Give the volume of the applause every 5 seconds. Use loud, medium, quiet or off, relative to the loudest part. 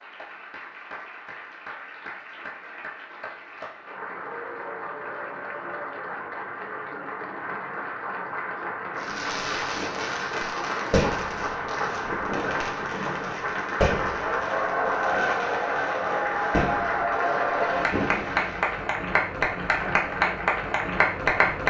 quiet, medium, medium, loud, loud.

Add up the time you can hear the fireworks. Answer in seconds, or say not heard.
10 s.